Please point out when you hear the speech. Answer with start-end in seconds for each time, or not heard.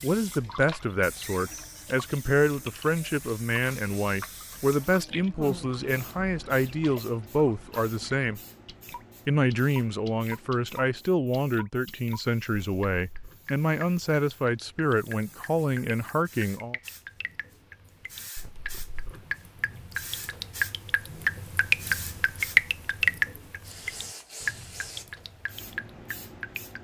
0.0-8.4, 9.2-16.8.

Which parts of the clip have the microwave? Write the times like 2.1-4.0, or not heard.
not heard.